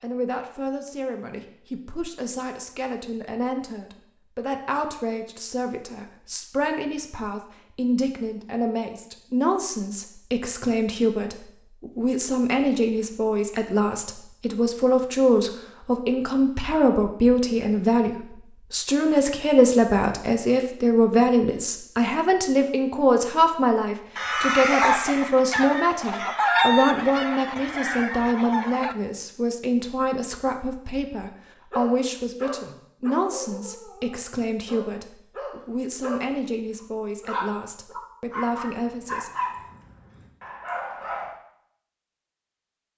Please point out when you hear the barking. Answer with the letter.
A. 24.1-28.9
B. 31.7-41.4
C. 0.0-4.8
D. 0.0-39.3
B.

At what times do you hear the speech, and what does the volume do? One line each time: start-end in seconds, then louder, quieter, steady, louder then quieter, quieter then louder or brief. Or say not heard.
0.0-39.3 louder then quieter.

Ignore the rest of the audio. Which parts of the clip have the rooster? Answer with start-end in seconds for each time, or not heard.
24.1-28.9.